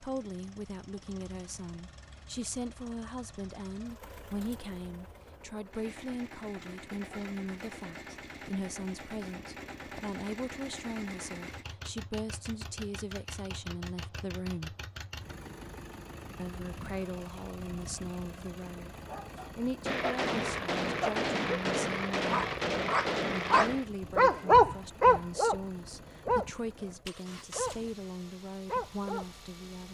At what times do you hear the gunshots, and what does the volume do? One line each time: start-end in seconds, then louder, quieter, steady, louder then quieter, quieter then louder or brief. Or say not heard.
19.9-23.9 steady.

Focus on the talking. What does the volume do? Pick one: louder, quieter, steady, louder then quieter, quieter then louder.
steady.